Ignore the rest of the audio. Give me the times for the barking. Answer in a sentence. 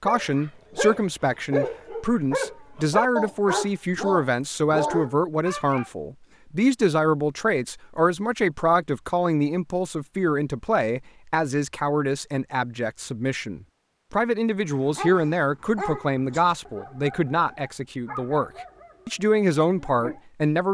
You can hear the barking from 0.0 to 5.9 s and from 14.6 to 20.2 s.